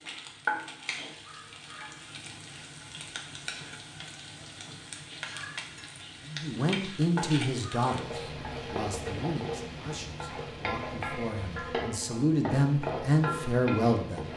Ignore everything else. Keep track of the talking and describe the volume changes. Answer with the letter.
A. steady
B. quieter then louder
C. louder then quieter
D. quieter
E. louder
B.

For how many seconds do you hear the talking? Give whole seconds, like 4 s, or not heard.
8 s.